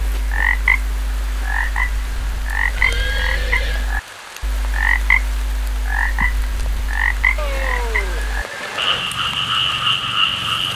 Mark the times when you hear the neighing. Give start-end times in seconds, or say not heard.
2.8-3.9, 7.3-9.1.